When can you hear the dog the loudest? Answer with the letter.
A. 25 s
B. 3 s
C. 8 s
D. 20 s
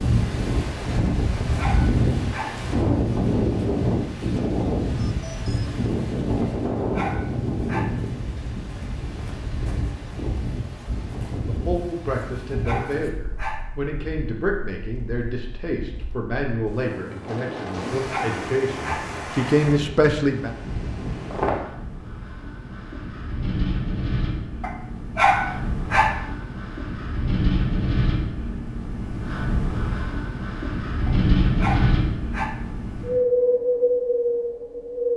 A.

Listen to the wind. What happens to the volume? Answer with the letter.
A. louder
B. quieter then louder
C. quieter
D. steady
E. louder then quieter
B.